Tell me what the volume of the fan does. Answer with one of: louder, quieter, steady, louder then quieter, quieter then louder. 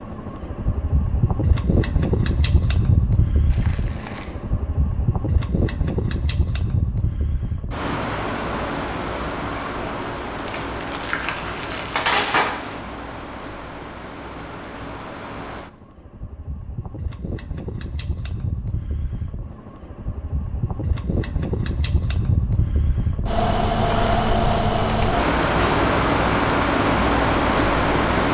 quieter then louder.